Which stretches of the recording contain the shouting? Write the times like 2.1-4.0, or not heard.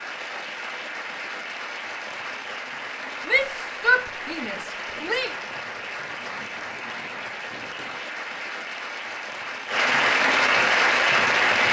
3.2-5.3.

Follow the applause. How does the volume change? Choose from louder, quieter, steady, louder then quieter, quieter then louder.
louder.